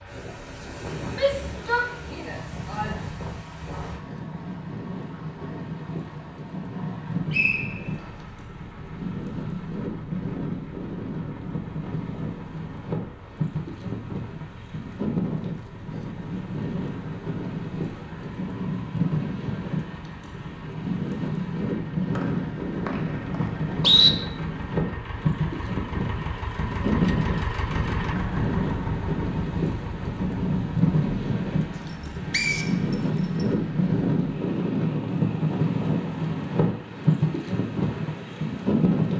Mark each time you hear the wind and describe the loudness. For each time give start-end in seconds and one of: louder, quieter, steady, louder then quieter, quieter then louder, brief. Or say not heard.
0.0-39.1 louder.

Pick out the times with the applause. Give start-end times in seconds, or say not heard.
not heard.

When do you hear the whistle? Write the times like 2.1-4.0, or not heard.
7.3-7.8, 22.1-24.1, 32.3-32.7.